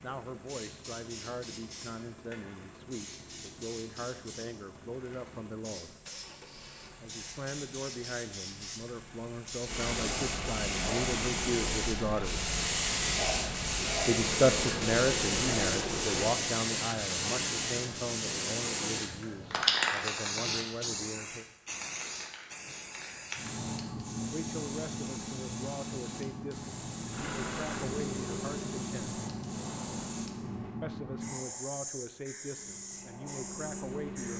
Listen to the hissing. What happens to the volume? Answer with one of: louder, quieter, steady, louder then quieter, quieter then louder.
louder then quieter.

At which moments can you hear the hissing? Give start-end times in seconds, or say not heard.
0.0-34.3.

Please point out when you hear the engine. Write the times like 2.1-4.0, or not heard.
0.0-16.4, 27.1-30.8, 32.5-34.3.